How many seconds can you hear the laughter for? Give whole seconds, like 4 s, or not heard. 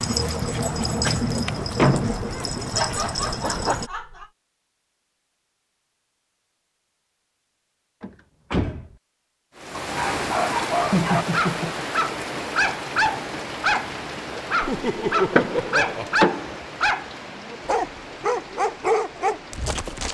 4 s.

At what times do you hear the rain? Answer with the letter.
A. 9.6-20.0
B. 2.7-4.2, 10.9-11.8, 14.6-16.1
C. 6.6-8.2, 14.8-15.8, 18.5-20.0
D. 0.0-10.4
A.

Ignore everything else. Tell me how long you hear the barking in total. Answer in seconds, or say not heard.
14 s.